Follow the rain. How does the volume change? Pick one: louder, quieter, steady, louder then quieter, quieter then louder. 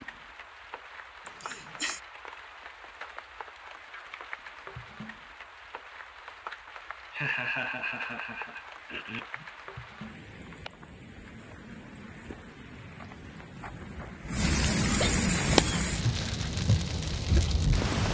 louder.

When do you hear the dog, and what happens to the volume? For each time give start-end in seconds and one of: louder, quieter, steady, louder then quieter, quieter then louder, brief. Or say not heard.
not heard.